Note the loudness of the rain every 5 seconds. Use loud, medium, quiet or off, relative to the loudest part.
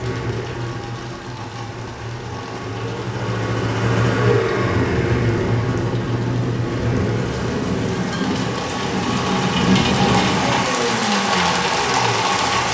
quiet, loud, loud.